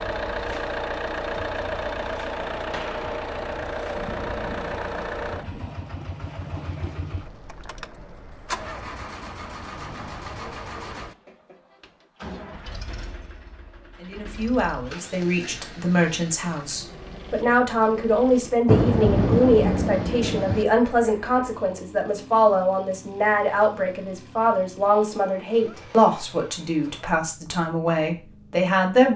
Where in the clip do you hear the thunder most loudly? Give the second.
19 s.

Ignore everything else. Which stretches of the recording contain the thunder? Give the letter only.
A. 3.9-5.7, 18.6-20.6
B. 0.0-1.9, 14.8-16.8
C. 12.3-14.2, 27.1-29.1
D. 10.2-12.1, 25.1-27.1
A.